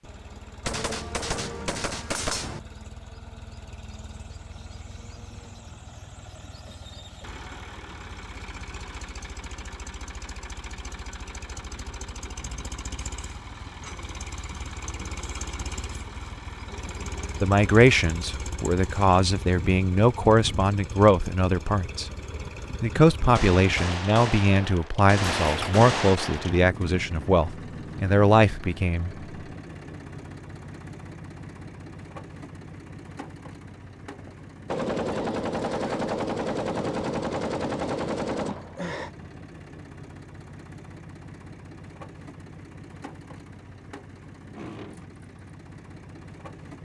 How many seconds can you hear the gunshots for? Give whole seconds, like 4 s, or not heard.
10 s.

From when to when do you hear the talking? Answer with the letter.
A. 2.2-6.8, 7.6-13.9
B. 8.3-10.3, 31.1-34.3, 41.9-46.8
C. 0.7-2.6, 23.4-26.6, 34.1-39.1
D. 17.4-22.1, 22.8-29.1
D.